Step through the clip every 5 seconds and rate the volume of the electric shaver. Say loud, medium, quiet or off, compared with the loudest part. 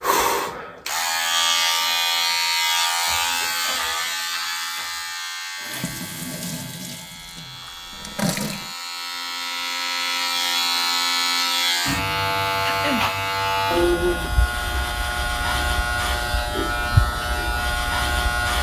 loud, medium, loud, loud.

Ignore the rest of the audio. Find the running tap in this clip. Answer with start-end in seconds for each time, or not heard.
5.6-8.8.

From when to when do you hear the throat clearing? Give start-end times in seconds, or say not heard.
12.7-13.2.